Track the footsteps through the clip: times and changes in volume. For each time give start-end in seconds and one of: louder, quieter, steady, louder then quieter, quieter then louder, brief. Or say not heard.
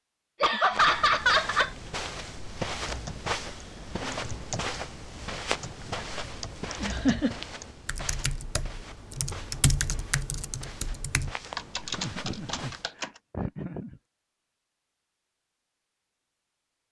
0.7-12.8 quieter.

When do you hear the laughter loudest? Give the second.
1 s.